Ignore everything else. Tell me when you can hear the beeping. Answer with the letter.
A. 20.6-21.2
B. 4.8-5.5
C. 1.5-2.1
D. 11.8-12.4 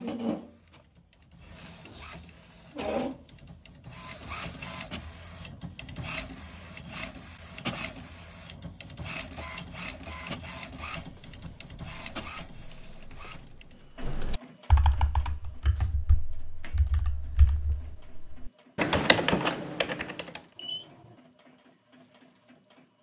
A.